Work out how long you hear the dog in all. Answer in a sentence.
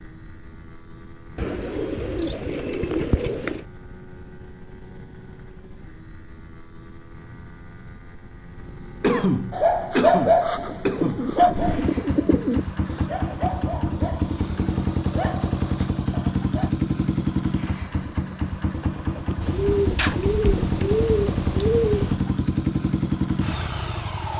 The dog can be heard for 7 seconds in total.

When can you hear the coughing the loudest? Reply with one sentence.
The volume of the coughing peaks at 9 seconds.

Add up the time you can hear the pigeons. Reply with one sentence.
The pigeons can be heard for 7 seconds in total.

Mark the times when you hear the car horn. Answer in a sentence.
You can't hear the car horn here.